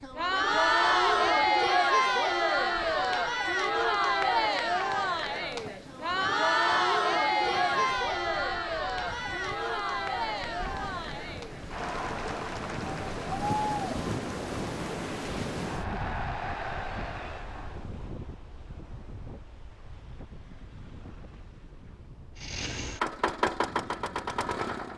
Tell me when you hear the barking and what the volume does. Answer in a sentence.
The barking can't be heard in this clip.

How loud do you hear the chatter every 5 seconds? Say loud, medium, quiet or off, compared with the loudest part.
loud, loud, medium, quiet, off.